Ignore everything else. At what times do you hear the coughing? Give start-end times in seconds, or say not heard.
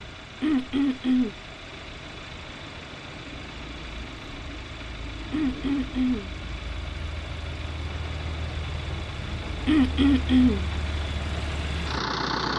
0.4-1.3, 5.3-6.3, 9.7-10.7.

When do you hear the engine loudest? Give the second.
12 s.